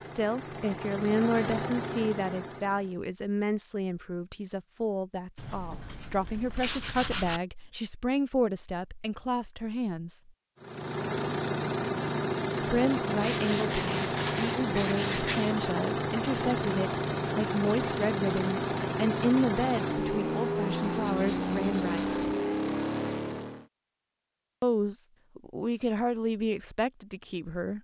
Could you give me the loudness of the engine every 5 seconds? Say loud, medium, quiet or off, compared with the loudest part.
medium, off, loud, loud, loud, off.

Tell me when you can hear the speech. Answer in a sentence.
You can hear the speech from 0.0 to 10.3 s, from 12.6 to 22.1 s and from 24.6 to 27.7 s.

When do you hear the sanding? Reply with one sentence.
You can hear the sanding from 5.3 to 7.4 s, from 13.2 to 15.7 s and from 20.8 to 22.4 s.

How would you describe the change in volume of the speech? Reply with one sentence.
The loudness of the speech stays about the same.